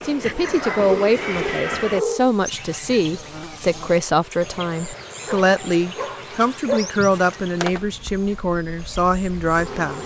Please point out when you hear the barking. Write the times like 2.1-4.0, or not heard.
0.6-2.3, 5.2-6.9.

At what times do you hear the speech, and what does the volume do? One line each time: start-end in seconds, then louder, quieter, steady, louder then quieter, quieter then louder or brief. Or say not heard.
0.0-10.0 steady.